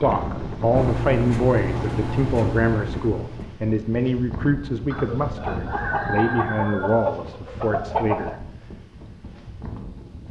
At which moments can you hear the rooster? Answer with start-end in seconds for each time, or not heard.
4.9-8.3.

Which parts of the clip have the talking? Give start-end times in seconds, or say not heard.
0.0-8.5.